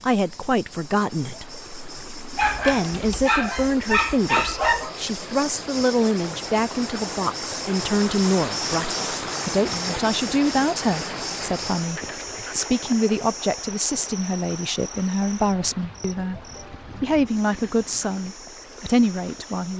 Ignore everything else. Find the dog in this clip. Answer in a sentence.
The dog can be heard from 2.4 to 5.0 s.